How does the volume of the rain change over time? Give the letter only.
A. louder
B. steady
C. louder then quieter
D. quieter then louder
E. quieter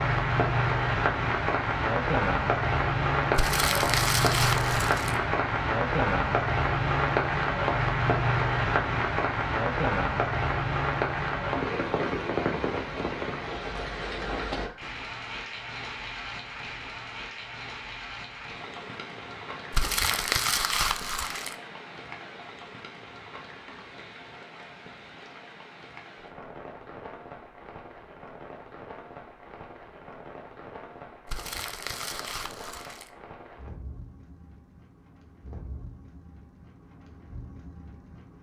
E.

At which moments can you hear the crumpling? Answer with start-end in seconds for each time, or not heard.
3.4-5.2, 19.7-21.6, 31.2-33.1.